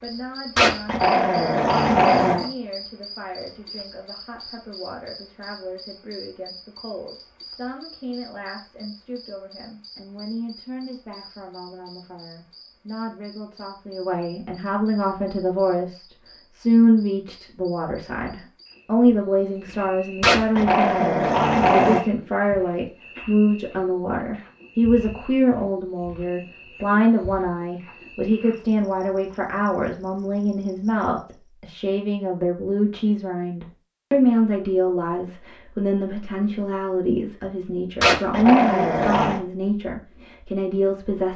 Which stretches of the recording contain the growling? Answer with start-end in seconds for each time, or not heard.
0.6-2.5, 20.2-22.0, 38.0-39.4.